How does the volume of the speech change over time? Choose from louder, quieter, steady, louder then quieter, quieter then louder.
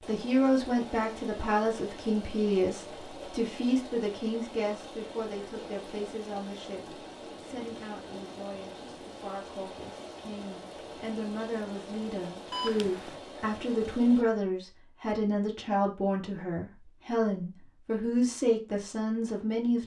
quieter then louder.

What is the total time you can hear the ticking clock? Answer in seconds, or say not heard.
not heard.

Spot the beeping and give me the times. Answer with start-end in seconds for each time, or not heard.
12.5-13.2.